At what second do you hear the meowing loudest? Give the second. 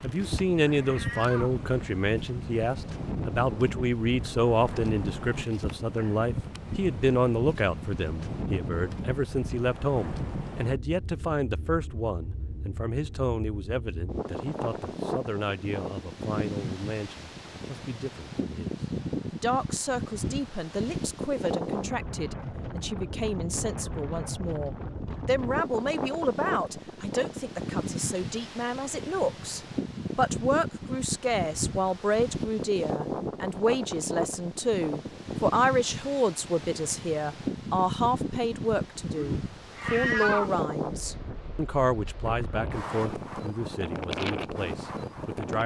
40 s.